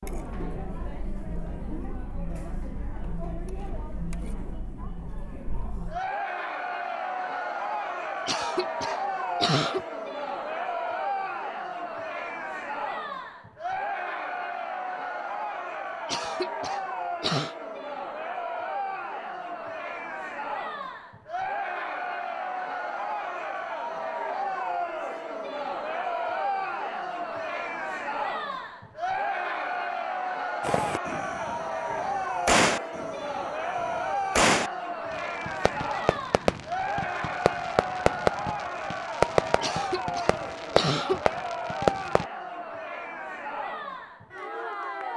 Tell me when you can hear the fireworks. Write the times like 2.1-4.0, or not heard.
30.6-42.2.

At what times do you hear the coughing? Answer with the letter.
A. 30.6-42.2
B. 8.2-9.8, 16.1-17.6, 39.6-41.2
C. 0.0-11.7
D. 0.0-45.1
B.